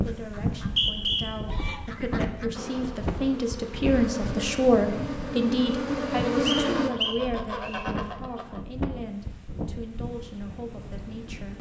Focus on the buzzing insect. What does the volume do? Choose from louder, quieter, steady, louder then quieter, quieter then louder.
louder.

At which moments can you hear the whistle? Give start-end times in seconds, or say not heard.
0.6-1.2, 6.5-7.8.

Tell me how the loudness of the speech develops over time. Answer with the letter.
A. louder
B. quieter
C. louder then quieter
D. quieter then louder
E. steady
C.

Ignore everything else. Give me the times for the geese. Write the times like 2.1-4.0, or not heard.
0.1-2.5, 6.7-8.7.